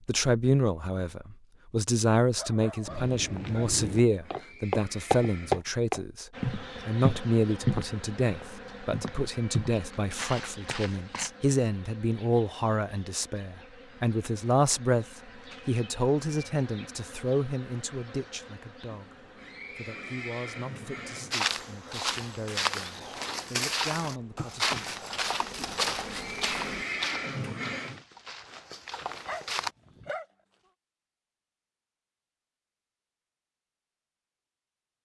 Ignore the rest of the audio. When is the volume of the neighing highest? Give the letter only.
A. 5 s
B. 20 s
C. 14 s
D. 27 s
D.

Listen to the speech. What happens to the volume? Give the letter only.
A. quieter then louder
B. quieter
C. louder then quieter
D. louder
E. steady
B.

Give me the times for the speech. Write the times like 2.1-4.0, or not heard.
0.1-15.1, 15.7-24.9.